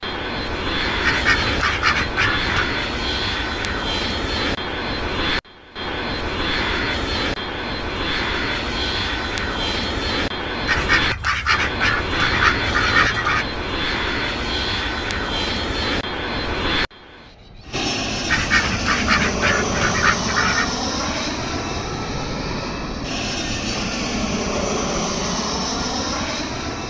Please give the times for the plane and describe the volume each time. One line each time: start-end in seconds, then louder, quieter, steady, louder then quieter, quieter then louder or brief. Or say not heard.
0.0-26.8 steady.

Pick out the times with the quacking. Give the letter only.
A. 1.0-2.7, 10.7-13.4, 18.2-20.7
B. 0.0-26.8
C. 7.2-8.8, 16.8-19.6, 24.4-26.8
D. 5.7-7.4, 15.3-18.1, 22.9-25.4
A.